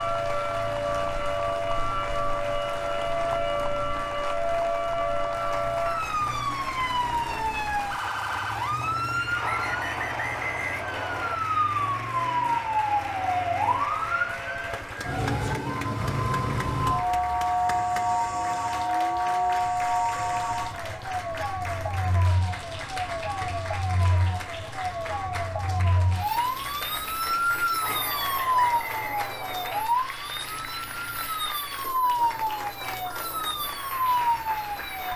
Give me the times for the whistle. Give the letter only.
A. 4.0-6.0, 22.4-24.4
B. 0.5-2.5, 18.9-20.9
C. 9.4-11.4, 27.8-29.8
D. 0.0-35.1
C.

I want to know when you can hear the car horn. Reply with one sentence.
You can't hear the car horn here.